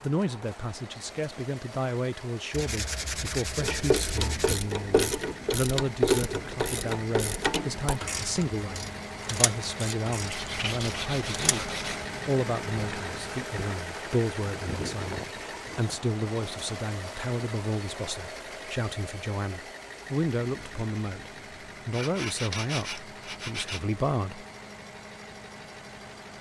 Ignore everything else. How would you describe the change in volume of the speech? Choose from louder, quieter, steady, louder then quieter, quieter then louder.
steady.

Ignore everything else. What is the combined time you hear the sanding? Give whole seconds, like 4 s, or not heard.
6 s.